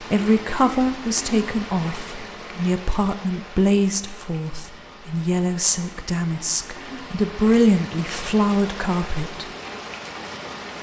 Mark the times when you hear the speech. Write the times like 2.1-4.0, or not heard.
0.0-9.4.